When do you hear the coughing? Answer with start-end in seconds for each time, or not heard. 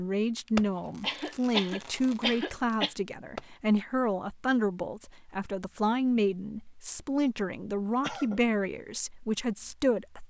0.5-3.0, 8.0-8.4.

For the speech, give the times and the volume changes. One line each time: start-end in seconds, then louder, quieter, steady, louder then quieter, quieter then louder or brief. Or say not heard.
0.0-10.2 steady.